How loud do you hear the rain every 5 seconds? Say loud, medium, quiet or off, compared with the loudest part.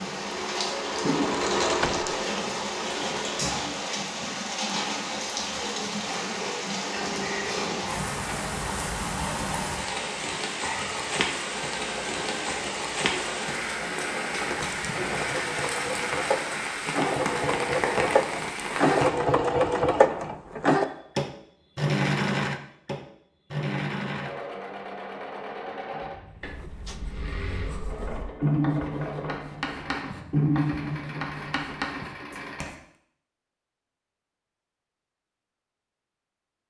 loud, loud, loud, loud, off, off, off, off.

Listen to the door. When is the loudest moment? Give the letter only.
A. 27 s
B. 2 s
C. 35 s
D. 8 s
B.